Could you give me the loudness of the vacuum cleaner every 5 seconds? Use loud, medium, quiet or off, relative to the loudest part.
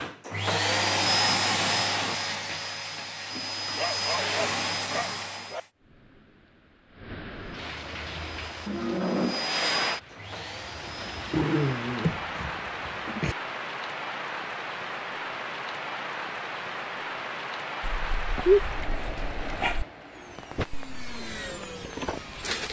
loud, loud, quiet, off, medium.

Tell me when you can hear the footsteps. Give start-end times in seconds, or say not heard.
not heard.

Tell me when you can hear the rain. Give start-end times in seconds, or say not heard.
5.7-22.5.